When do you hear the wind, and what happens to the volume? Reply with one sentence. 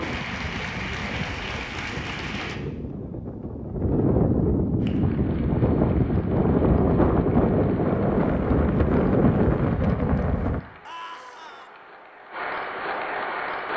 You can hear the wind from 0.0 to 10.6 s, getting louder.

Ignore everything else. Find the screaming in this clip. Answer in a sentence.
The screaming can be heard from 10.8 to 11.7 s.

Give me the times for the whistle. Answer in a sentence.
You can't hear the whistle here.